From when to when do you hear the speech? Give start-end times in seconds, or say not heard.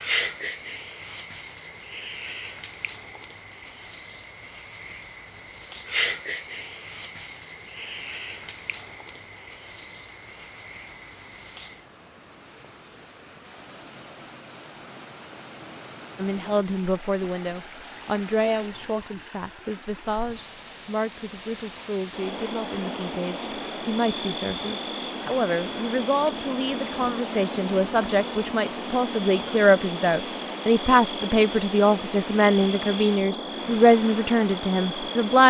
16.1-35.4.